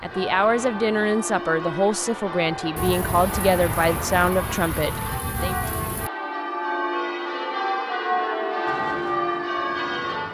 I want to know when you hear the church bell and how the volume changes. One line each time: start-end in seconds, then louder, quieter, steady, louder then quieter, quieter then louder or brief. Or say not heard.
0.0-10.2 louder.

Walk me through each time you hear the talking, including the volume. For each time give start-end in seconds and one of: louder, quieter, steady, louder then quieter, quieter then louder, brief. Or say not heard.
0.0-5.5 steady.